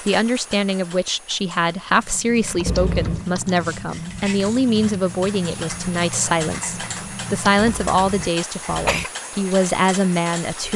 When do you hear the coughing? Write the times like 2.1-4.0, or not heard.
2.6-3.2, 7.5-9.1.